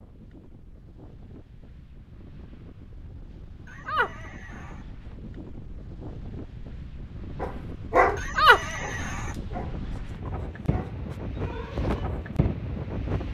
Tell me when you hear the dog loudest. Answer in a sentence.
The loudest moment of the dog is at 8 seconds.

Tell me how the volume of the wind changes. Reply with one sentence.
The loudness of the wind goes up.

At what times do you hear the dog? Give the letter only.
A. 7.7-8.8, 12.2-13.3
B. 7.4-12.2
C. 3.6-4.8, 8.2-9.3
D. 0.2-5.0
B.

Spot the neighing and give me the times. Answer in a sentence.
You can hear the neighing from 3.6 to 4.8 s and from 8.2 to 9.3 s.